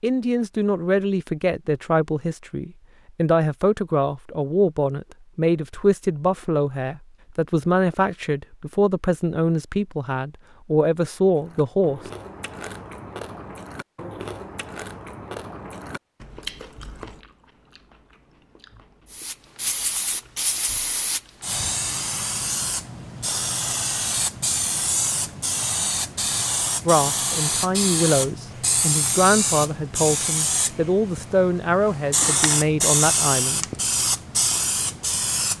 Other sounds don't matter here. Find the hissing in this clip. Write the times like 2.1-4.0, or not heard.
19.1-35.5.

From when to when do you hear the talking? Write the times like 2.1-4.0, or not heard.
0.0-12.0, 26.9-33.6.